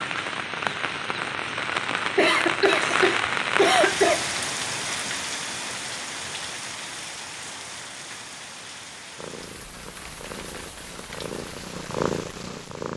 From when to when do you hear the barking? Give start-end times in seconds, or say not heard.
not heard.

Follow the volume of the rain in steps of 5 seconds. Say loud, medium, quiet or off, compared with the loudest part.
loud, medium, quiet.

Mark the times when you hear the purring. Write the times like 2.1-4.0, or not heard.
9.2-12.9.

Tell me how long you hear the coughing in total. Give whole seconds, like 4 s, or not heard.
2 s.